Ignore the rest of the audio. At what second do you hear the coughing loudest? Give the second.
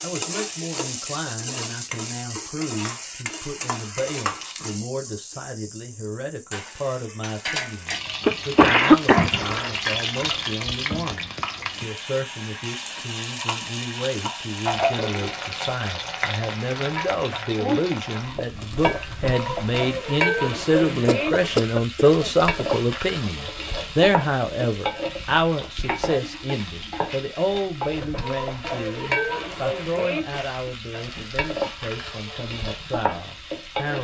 9 s.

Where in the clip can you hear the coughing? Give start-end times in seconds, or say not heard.
8.2-9.7, 20.9-22.3.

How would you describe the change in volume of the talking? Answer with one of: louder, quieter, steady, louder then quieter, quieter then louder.
louder then quieter.